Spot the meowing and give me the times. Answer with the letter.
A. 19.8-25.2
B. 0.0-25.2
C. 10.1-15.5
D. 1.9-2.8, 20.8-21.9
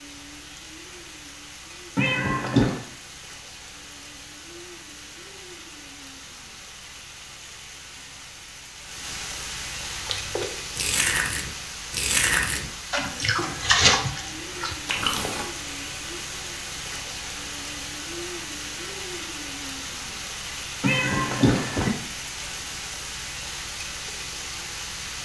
D.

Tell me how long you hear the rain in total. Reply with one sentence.
You can hear the rain for 25 seconds altogether.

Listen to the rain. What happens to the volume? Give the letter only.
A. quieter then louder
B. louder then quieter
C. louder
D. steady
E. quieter
C.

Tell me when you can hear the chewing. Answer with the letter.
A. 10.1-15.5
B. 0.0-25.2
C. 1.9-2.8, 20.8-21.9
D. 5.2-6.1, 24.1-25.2
A.